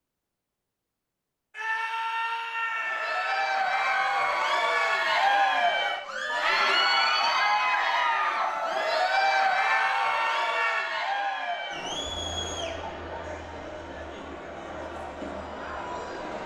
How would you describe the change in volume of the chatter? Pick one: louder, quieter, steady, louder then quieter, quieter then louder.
quieter.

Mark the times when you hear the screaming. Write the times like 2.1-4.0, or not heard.
1.5-3.5, 9.6-10.9.